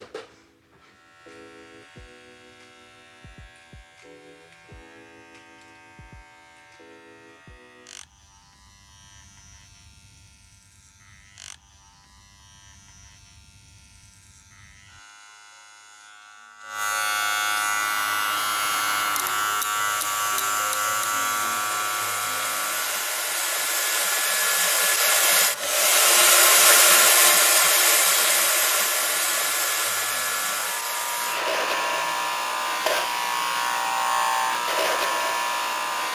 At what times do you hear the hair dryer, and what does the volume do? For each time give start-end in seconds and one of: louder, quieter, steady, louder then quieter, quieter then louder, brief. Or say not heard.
17.5-36.1 louder then quieter.